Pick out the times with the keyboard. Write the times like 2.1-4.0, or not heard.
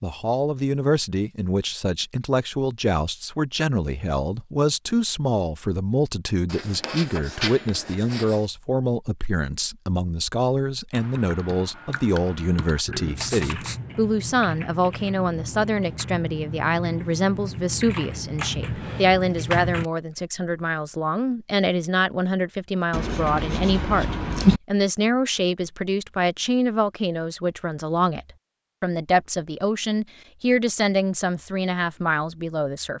10.9-19.9.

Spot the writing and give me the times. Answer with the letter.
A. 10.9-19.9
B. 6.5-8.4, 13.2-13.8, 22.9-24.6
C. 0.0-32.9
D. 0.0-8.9
B.